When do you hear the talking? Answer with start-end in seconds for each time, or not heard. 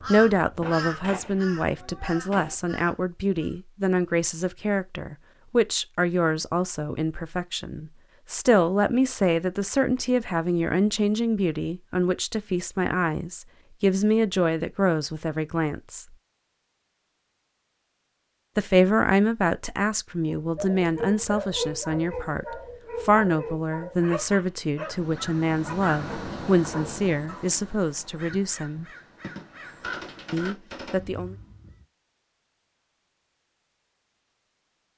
0.1-16.1, 18.6-28.9, 30.3-31.4.